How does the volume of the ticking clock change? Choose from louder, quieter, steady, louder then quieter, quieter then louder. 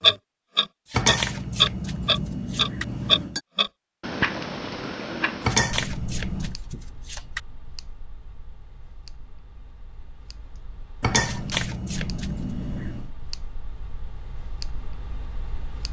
quieter then louder.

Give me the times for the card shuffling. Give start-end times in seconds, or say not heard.
0.8-2.9, 5.4-7.4, 11.2-12.6.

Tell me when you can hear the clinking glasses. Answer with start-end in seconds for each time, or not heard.
0.9-3.4, 5.4-6.5, 11.0-13.1.